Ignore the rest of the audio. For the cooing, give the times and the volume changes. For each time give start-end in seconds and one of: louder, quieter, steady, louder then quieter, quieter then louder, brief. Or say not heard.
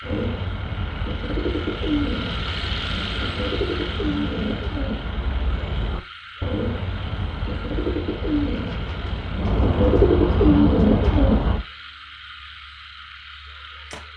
0.0-11.7 louder.